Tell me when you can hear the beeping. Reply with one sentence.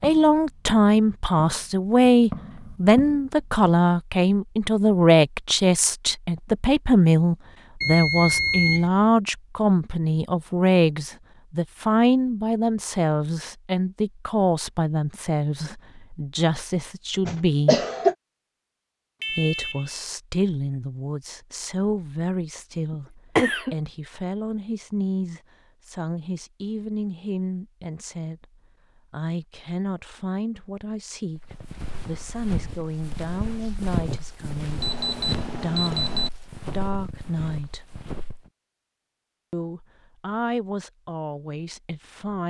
You can hear the beeping from 7.8 to 8.9 s, from 19.2 to 20.1 s and from 34.8 to 36.3 s.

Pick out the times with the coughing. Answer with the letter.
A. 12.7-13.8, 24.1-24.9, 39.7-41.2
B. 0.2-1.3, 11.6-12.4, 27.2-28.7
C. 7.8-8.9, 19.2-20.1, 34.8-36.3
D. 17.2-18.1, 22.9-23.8
D.